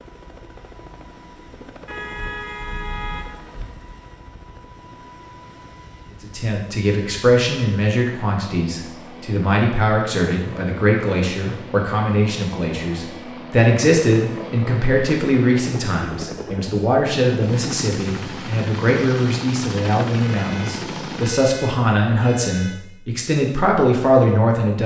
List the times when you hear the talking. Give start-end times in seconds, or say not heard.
6.2-24.8.